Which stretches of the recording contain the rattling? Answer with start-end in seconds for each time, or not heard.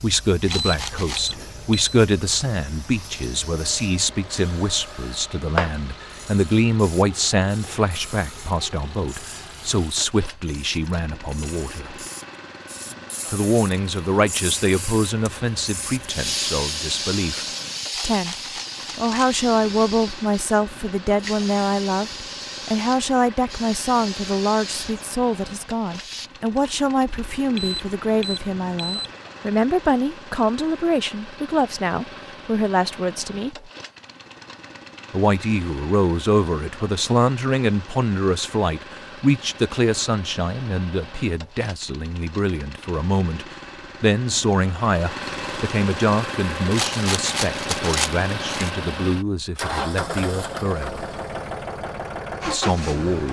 0.4-1.4, 17.9-19.4, 46.7-48.7.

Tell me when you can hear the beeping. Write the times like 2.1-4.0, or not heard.
0.5-1.9, 27.6-29.1.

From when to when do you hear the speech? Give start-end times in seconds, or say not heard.
0.0-11.9, 13.3-18.4, 18.9-33.7, 35.1-51.1, 52.5-53.2.